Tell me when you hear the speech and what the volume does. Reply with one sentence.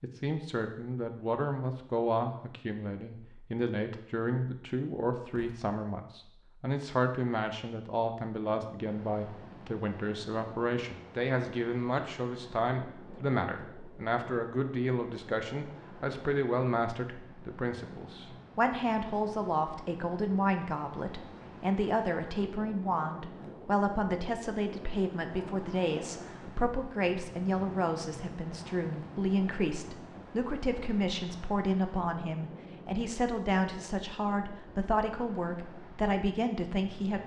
You can hear the speech from 0.0 to 37.2 s, at a steady volume.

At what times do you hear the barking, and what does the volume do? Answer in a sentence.
You can't hear the barking here.